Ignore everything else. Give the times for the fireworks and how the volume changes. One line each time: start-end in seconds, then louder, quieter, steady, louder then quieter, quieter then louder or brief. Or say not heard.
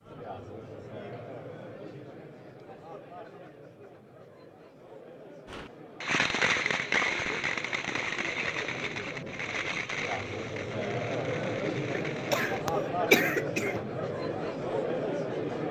5.5-12.7 quieter.